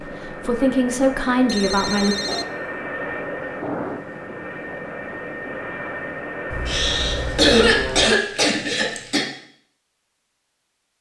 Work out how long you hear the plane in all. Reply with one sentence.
You can hear the plane for 8 seconds altogether.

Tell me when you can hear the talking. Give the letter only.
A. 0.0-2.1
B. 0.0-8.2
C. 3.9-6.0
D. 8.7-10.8
A.